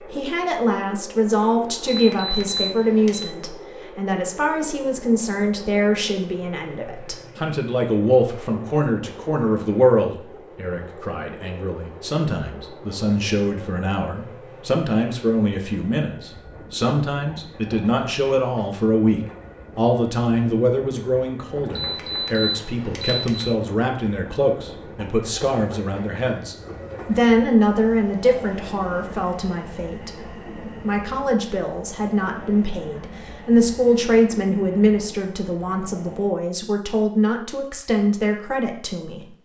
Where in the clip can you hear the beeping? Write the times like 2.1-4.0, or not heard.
1.9-3.3, 21.7-23.5.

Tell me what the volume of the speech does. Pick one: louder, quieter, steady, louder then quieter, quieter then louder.
steady.